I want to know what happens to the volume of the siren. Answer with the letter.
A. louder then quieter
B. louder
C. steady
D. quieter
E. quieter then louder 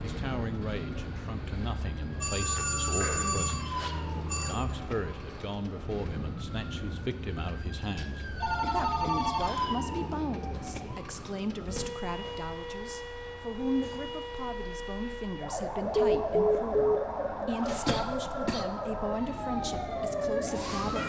B.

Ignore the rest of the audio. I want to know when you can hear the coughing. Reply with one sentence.
The coughing can be heard from 3.0 to 3.5 s, from 8.6 to 9.3 s and from 17.9 to 18.6 s.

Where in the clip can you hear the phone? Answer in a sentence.
The phone can be heard from 2.2 to 4.5 s, from 8.0 to 9.8 s and from 15.9 to 17.0 s.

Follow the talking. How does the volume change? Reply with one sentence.
The volume of the talking stays about the same.